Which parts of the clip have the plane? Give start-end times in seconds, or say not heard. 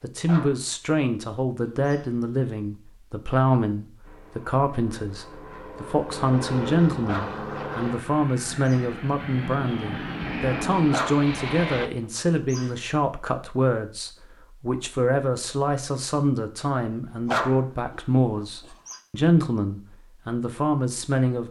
4.0-11.9.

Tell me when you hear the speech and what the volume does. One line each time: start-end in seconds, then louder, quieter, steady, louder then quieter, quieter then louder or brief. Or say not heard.
0.0-21.4 steady.